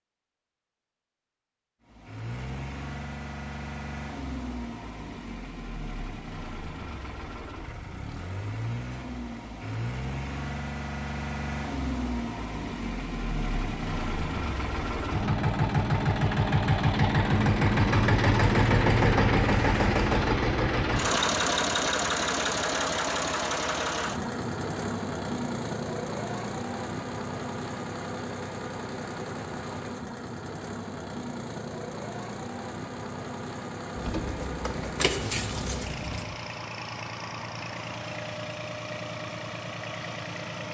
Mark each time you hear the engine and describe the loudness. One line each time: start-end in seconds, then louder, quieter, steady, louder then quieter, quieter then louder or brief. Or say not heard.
1.9-40.7 louder then quieter.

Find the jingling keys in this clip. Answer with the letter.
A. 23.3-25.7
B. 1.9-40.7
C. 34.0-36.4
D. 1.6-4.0
C.